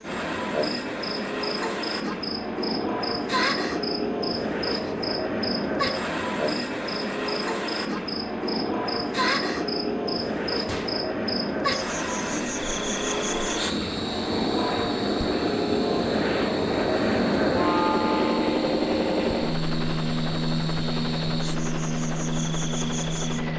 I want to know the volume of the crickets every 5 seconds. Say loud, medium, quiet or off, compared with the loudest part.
loud, loud, loud, medium, medium.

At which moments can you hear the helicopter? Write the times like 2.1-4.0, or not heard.
0.0-23.5.